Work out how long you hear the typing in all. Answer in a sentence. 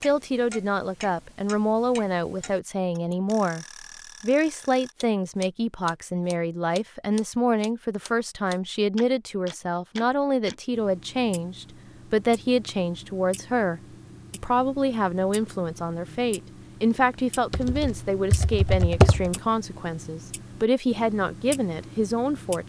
The typing can be heard for 2 seconds in total.